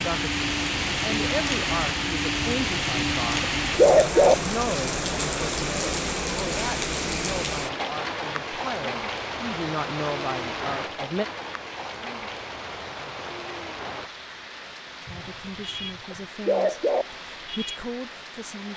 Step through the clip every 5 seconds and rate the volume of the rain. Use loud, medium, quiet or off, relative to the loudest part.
loud, loud, medium, quiet.